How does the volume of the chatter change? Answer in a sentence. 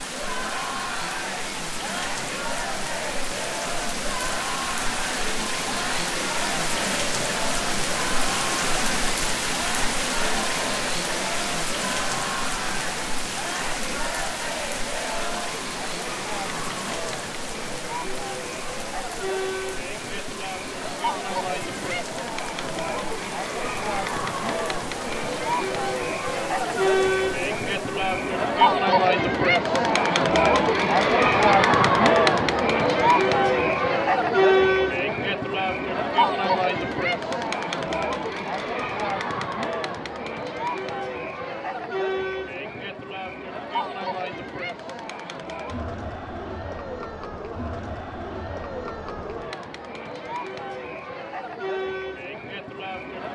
The volume of the chatter goes up, then down.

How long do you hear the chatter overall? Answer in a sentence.
You can hear the chatter for 53 seconds altogether.